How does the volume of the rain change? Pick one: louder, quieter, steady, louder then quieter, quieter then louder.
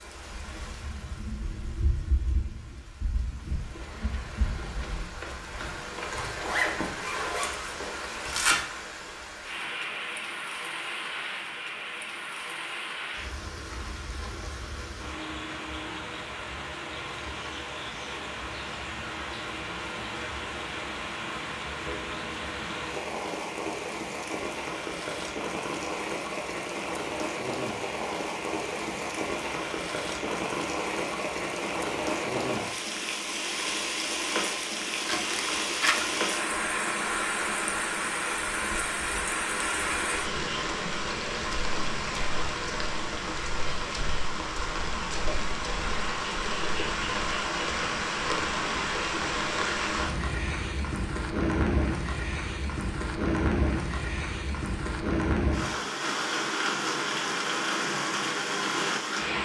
louder.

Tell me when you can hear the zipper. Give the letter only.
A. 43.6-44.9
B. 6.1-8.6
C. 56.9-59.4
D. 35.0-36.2
B.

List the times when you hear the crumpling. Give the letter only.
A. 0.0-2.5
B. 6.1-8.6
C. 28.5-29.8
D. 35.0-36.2
D.